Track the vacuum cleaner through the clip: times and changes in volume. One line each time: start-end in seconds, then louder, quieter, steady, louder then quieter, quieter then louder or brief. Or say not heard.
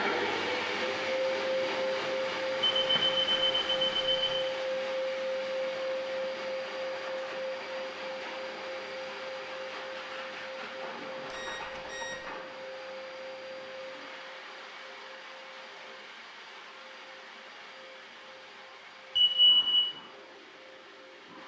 0.0-21.4 quieter.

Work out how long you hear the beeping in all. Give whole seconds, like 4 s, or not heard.
4 s.